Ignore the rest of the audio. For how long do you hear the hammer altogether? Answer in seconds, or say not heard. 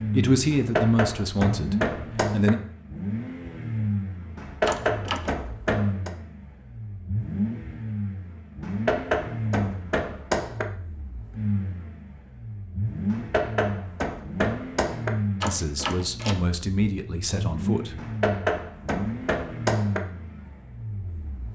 10 s.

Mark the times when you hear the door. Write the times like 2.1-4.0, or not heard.
4.7-5.3, 15.4-16.4.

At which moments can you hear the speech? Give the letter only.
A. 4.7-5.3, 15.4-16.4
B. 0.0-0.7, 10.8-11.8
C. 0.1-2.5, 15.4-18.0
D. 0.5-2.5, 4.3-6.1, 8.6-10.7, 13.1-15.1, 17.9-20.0
C.